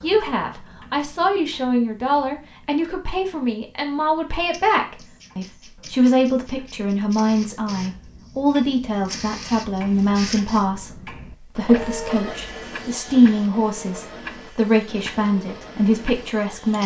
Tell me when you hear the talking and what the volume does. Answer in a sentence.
The talking can be heard from 0.0 to 16.8 s, at a steady volume.